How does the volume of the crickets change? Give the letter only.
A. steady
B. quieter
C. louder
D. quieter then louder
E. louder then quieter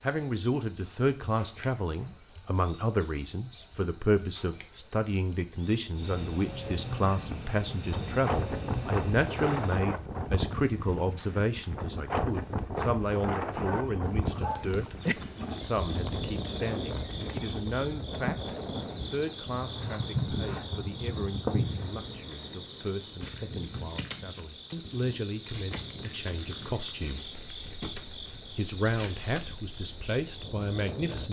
A.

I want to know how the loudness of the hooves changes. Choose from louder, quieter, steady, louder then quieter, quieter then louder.
louder.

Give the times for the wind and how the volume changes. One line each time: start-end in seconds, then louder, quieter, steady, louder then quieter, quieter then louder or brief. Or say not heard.
7.9-31.2 quieter.